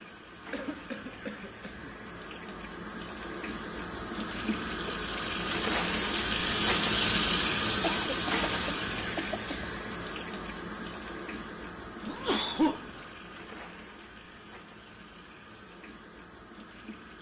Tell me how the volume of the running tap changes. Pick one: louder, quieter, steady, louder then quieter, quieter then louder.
louder then quieter.